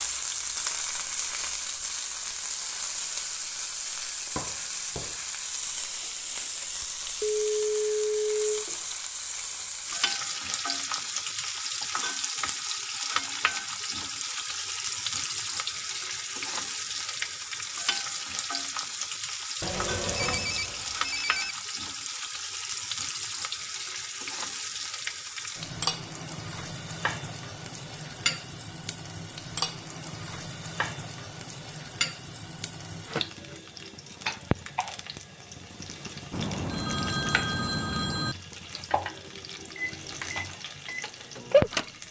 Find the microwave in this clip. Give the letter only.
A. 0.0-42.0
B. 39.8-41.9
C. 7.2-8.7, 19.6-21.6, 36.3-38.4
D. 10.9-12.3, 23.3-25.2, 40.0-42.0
B.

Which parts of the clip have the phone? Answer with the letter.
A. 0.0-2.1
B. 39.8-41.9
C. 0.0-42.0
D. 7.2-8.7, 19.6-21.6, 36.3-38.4
D.